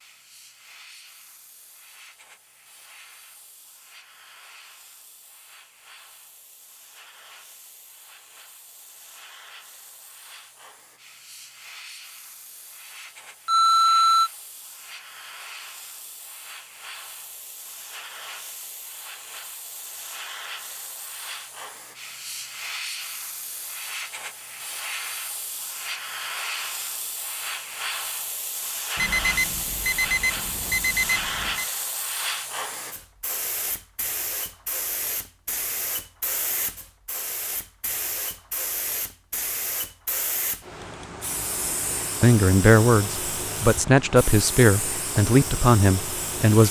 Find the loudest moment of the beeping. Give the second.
14 s.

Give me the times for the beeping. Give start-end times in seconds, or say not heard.
13.4-14.3, 28.9-31.6.